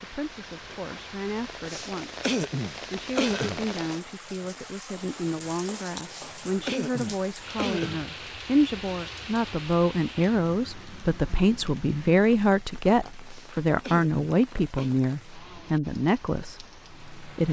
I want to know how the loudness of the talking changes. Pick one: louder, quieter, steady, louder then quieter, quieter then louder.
louder.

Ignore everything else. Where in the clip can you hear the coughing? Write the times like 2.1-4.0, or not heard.
1.6-3.6, 6.1-8.1, 13.2-14.9.